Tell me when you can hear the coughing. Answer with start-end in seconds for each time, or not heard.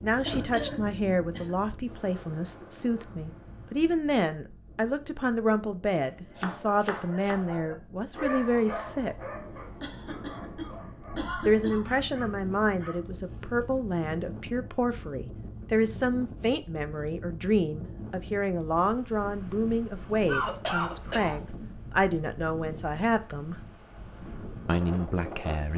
0.2-1.6, 9.8-12.0, 20.2-21.4.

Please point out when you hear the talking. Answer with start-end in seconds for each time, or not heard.
0.0-9.2, 11.4-23.6, 24.6-25.7.